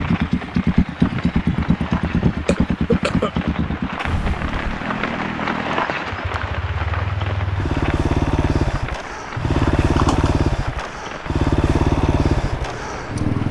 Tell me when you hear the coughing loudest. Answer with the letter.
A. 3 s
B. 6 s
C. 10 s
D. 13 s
A.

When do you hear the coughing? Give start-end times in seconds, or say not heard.
2.5-3.3, 9.3-10.4.